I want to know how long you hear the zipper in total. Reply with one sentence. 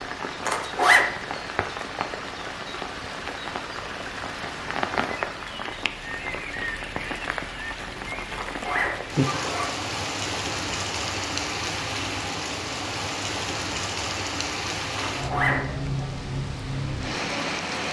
You can hear the zipper for 3 seconds altogether.